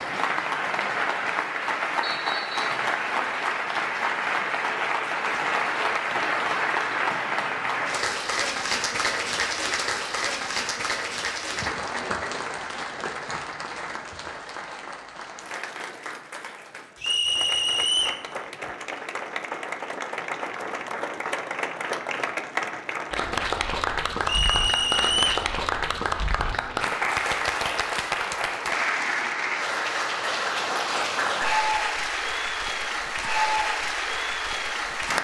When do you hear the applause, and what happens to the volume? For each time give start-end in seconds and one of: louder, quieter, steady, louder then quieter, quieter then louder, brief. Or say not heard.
0.0-35.1 quieter then louder.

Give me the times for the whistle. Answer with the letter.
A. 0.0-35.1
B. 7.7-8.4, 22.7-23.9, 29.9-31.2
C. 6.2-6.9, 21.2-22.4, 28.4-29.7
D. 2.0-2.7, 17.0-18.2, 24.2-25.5
D.